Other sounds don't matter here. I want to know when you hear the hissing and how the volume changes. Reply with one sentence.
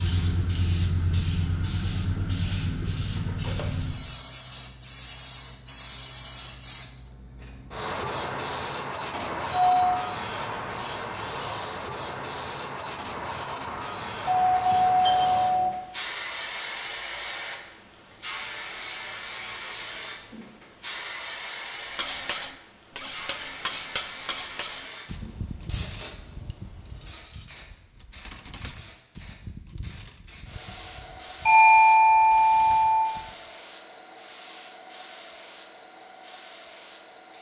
The hissing can be heard from 0.0 to 37.3 s, getting quieter.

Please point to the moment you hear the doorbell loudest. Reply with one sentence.
The volume of the doorbell peaks at 32 seconds.